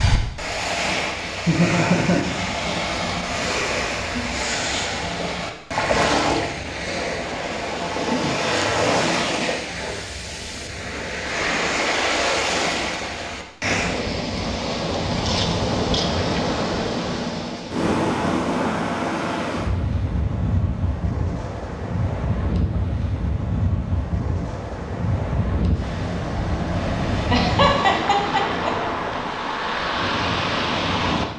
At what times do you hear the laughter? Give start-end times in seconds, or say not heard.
1.4-2.4, 27.3-28.7.